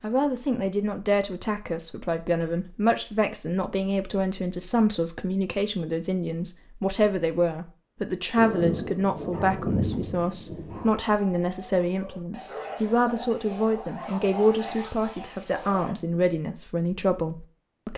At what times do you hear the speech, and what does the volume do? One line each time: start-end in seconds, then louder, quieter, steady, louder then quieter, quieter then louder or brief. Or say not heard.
0.0-17.9 steady.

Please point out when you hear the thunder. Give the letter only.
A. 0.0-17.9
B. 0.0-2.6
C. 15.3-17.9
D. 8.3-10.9
D.